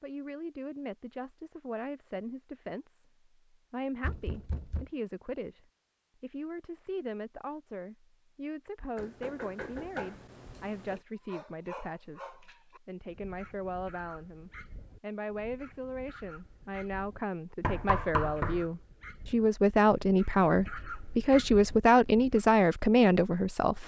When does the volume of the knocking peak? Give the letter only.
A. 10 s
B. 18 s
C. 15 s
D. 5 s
B.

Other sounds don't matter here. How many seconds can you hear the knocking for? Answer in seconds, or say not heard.
4 s.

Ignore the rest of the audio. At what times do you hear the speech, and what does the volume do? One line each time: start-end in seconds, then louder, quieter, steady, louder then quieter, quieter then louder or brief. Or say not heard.
0.0-23.8 louder.